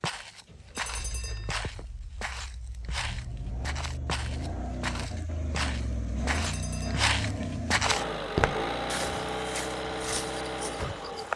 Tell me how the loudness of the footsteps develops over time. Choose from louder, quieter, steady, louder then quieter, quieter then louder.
louder then quieter.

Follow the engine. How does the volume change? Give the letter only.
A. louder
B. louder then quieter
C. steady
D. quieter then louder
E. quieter
A.